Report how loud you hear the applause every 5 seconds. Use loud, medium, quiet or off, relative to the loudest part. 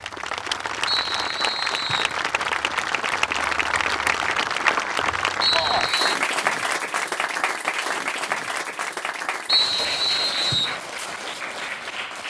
loud, loud, medium.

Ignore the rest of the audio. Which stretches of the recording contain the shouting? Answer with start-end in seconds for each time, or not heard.
5.5-5.9.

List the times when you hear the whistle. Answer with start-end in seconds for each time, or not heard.
0.8-2.1, 5.4-6.2, 9.4-10.8.